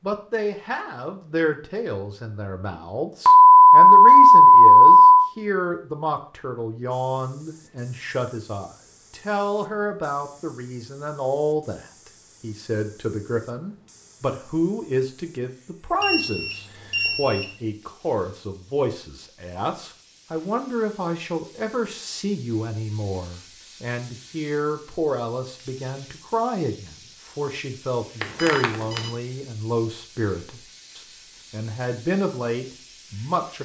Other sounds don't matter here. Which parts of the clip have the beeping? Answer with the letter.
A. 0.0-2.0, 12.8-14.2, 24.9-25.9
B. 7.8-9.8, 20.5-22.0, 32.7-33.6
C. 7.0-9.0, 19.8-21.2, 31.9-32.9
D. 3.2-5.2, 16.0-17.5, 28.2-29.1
D.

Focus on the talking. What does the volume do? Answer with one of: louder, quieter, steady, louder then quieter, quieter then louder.
steady.